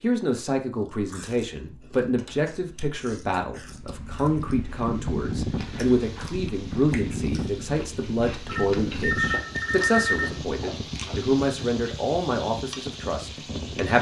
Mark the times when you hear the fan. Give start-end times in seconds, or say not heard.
3.6-13.9.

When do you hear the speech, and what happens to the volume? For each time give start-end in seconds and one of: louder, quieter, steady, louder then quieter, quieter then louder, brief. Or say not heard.
0.0-13.9 steady.